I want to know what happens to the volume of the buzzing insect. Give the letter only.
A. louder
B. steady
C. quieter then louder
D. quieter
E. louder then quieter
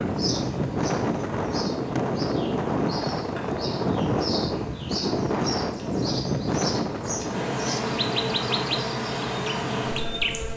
A.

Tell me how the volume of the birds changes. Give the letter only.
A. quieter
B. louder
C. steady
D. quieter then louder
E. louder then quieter
B.